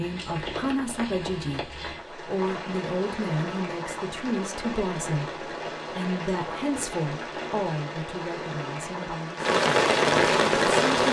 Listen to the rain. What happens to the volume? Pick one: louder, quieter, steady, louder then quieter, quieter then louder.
louder.